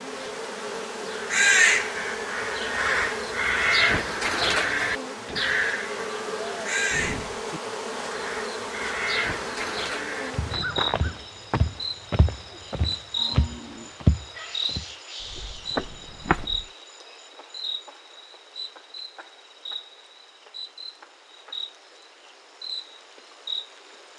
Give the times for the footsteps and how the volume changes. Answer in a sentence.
You can hear the footsteps from 10.3 to 16.6 s, getting louder then quieter.